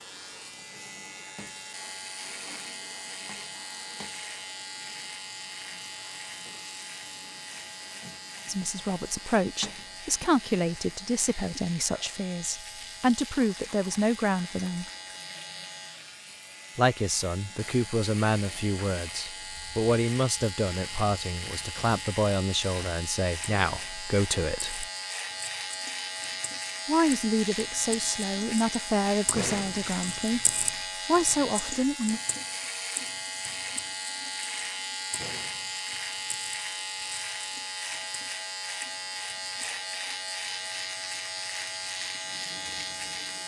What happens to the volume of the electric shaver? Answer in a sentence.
The loudness of the electric shaver goes up.